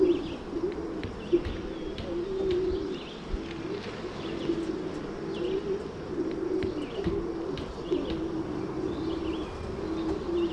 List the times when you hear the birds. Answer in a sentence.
The birds can be heard from 0.0 to 10.4 s.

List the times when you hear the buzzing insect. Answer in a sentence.
The buzzing insect can be heard from 0.0 to 10.4 s.